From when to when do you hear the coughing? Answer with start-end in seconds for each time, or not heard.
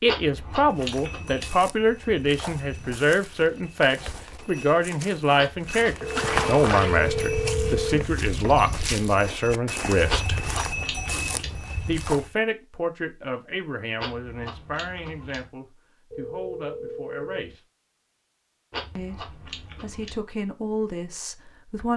not heard.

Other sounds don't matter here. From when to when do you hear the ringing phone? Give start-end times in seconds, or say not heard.
6.0-8.6, 16.1-17.6.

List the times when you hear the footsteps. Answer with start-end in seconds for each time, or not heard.
0.5-12.3.